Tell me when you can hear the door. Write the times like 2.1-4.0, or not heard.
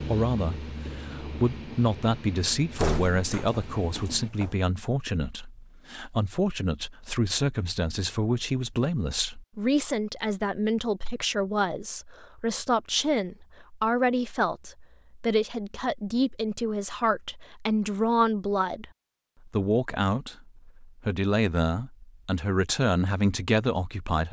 2.8-4.5.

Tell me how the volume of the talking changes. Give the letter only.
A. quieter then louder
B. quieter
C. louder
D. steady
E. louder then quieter
D.